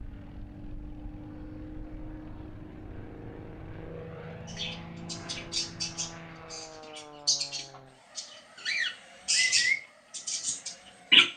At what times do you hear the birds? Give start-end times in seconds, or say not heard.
4.5-11.3.